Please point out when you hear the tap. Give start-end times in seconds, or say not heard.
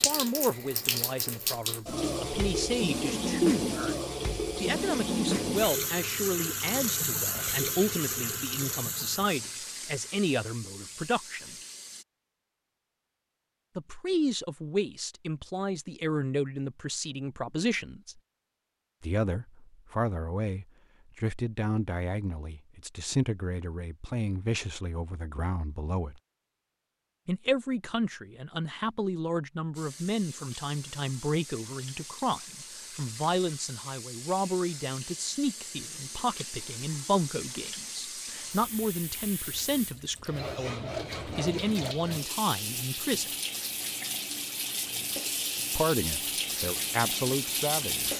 0.0-12.1, 29.8-48.1.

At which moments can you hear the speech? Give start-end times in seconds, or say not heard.
0.1-4.0, 4.6-11.6, 13.8-18.2, 19.0-26.2, 27.2-43.3, 45.8-48.1.